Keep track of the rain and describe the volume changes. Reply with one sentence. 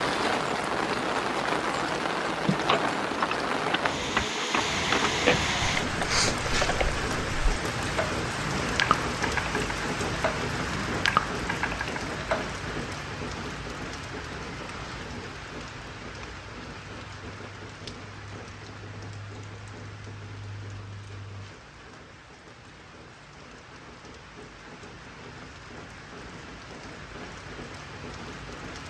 The volume of the rain goes down.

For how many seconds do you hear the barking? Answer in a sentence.
The barking can't be heard in this clip.